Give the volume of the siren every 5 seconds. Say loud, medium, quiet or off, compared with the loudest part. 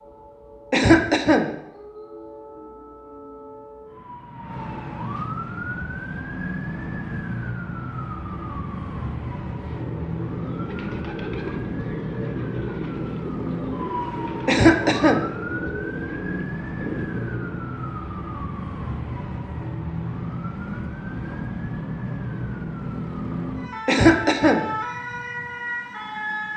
medium, loud, loud, loud, loud, loud.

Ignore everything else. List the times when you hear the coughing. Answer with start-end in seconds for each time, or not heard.
0.7-1.5, 14.4-15.2, 23.9-24.6.